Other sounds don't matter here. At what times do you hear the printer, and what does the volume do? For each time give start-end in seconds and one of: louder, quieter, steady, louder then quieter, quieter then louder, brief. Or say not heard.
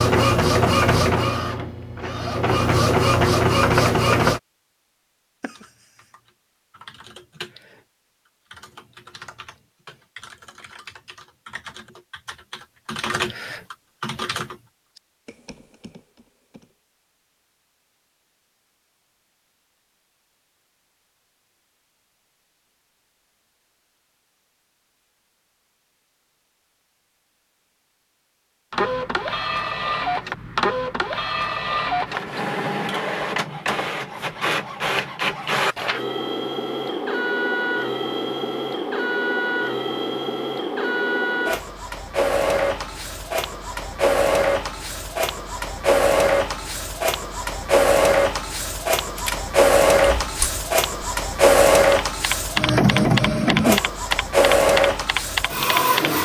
0.0-4.4 quieter then louder
28.7-56.2 louder.